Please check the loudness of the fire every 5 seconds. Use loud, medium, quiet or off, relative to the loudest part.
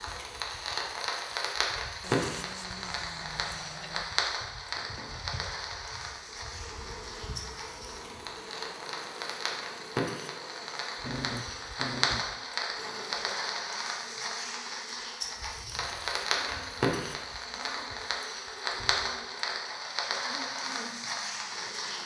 loud, medium, loud, loud, loud.